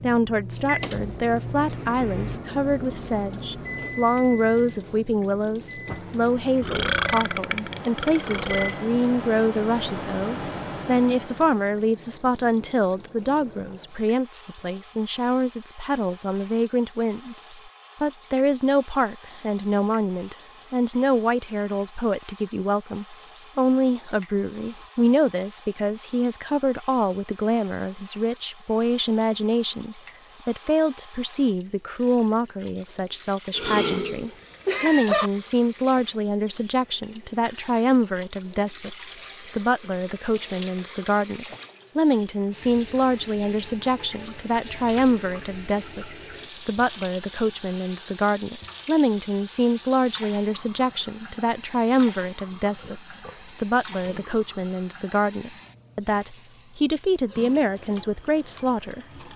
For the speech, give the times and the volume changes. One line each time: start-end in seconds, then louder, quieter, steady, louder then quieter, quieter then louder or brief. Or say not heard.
0.0-59.0 steady.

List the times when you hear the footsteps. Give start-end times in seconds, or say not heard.
not heard.